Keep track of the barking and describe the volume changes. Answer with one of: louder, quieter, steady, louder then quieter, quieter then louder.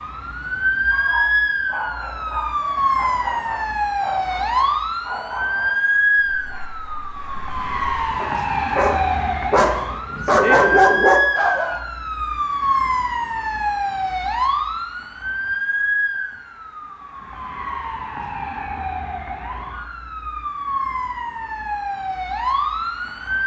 louder.